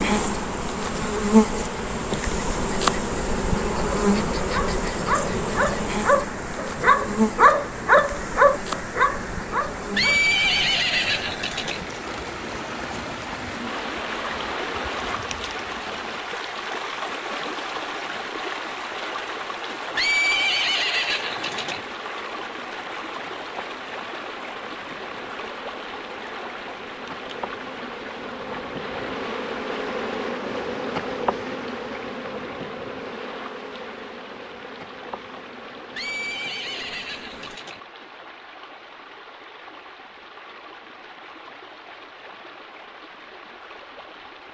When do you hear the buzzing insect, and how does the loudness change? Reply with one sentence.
The buzzing insect can be heard from 0.0 to 16.2 s, getting quieter; and from 21.1 to 37.6 s, getting louder then quieter.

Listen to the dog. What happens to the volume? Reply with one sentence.
The loudness of the dog goes up, then down.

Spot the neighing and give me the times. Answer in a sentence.
The neighing can be heard from 9.9 to 11.8 s, from 19.9 to 21.9 s and from 35.9 to 37.8 s.